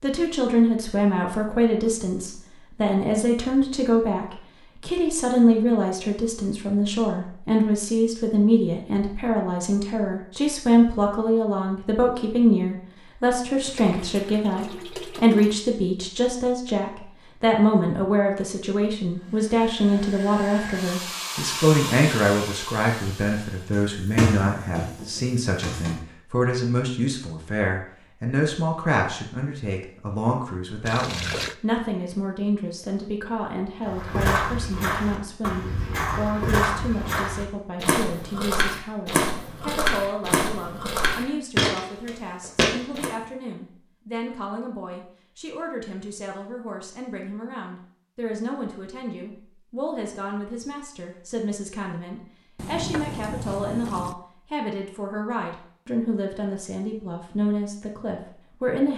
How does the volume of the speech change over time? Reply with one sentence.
The loudness of the speech goes down.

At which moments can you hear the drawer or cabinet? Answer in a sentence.
You can hear the drawer or cabinet from 23.7 to 26.0 s.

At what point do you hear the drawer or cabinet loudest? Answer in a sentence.
The volume of the drawer or cabinet peaks at 24 seconds.